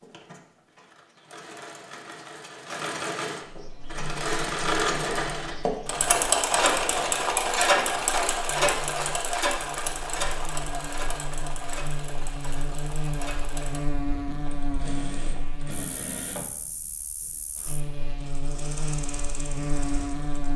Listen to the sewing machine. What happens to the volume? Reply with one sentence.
The loudness of the sewing machine goes up, then down.